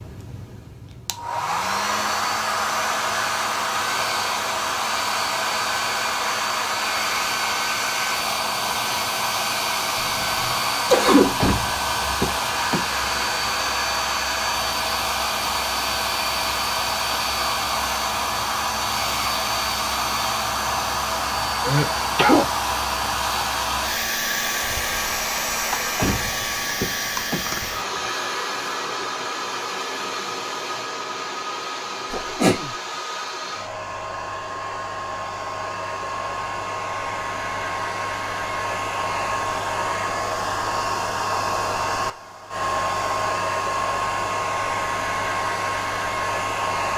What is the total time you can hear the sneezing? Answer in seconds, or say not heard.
2 s.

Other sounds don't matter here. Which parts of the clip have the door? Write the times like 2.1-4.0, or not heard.
11.4-13.4, 25.9-28.1.